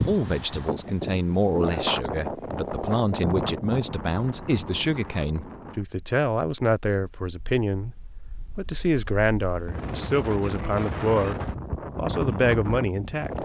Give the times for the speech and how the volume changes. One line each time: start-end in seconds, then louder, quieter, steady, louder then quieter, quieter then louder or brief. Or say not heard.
0.1-13.4 steady.